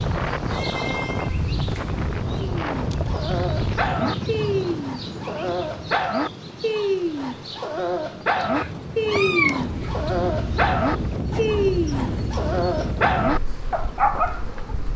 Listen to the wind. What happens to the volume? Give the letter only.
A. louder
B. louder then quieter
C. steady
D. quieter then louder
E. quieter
D.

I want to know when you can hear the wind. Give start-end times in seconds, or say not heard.
0.0-14.9.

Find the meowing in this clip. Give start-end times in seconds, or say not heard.
0.5-1.9, 8.6-10.1.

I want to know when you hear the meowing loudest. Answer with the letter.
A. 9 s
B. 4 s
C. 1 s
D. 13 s
A.